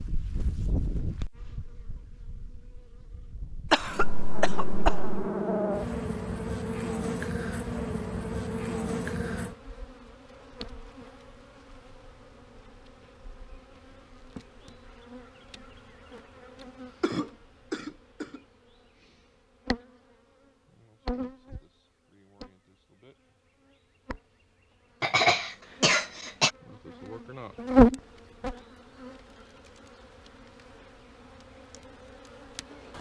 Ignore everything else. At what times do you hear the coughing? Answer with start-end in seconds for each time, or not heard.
3.7-5.3, 17.0-18.4, 25.0-26.5.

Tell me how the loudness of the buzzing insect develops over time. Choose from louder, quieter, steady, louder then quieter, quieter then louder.
quieter then louder.